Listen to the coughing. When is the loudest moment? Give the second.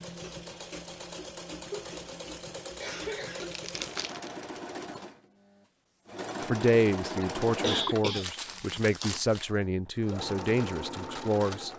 8 s.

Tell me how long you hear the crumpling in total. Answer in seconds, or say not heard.
2 s.